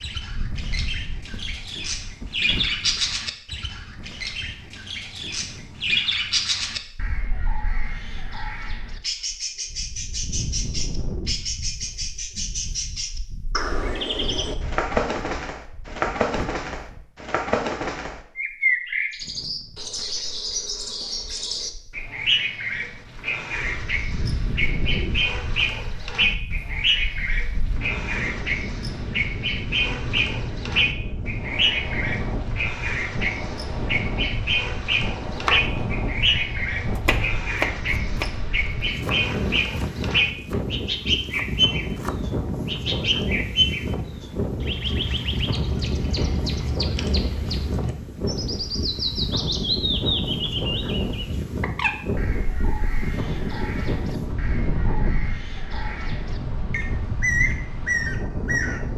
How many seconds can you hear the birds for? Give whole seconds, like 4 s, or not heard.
59 s.